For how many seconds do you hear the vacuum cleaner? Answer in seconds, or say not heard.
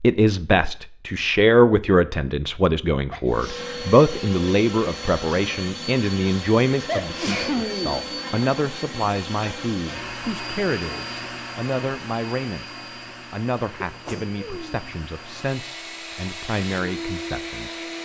15 s.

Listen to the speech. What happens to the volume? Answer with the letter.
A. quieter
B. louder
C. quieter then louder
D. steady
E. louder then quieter
A.